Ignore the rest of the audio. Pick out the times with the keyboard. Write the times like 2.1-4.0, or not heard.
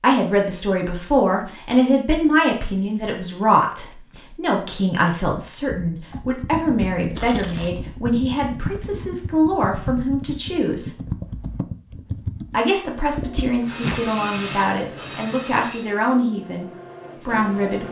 5.2-13.7.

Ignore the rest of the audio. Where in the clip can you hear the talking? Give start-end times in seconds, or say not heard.
0.0-10.9, 12.5-17.8.